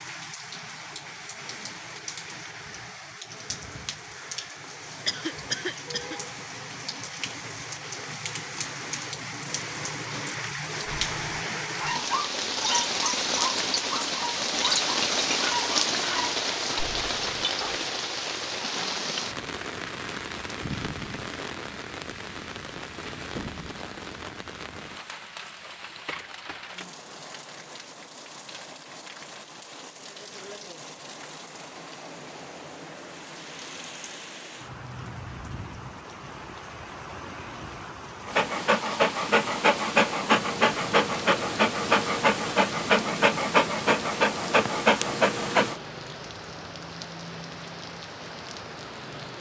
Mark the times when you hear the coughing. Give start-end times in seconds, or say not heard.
5.0-6.2.